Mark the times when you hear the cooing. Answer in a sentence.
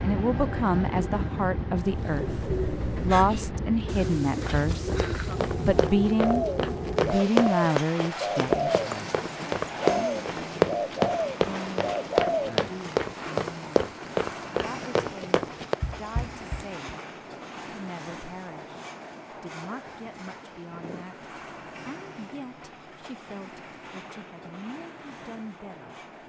The cooing can be heard from 1.9 to 12.8 s.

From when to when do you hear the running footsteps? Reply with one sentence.
You can hear the running footsteps from 4.8 to 16.9 s.